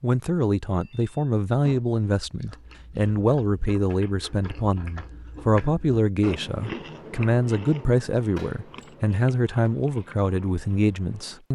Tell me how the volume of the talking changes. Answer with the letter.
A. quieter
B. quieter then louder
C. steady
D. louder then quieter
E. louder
C.